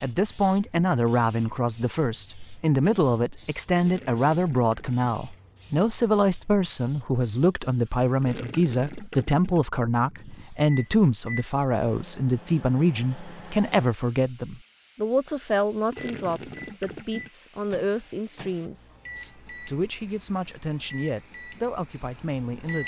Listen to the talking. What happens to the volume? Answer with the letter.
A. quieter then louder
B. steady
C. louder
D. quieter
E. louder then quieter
D.